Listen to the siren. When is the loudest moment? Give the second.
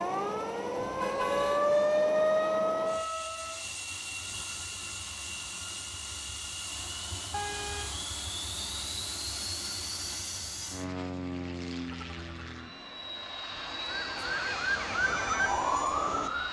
2 s.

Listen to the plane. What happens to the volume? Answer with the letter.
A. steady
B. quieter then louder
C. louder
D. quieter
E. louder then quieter
A.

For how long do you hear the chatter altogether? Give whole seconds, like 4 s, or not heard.
not heard.